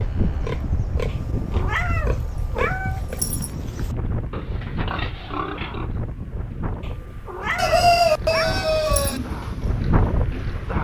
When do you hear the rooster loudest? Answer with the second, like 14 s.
8 s.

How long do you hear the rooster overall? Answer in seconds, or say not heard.
2 s.